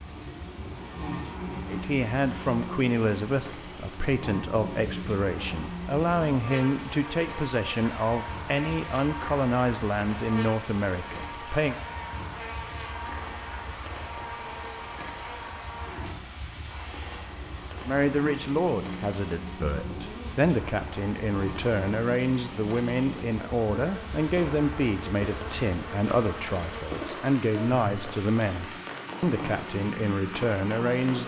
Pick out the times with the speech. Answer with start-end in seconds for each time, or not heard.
1.6-11.8, 17.9-31.2.